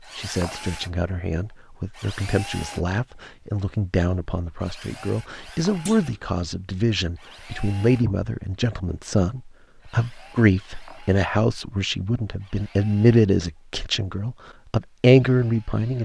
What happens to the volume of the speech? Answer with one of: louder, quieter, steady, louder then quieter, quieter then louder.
louder.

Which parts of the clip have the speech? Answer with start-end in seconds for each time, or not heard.
0.0-15.9.